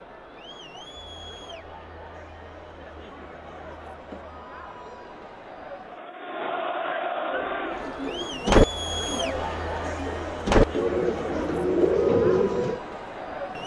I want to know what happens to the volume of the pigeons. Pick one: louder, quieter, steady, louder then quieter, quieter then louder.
quieter then louder.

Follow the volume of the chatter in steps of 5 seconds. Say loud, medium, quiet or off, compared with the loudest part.
medium, loud, loud.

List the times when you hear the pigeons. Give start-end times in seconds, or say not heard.
7.3-12.8.